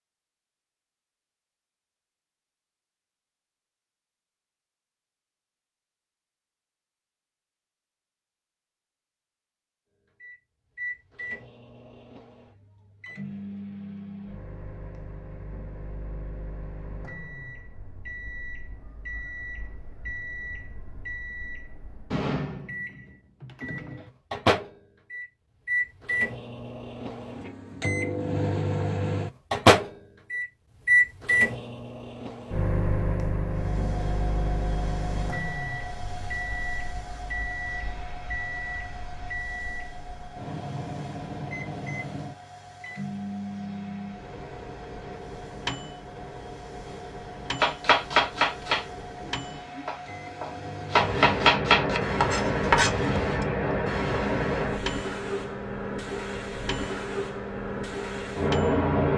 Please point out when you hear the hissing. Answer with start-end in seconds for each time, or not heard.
33.5-59.1.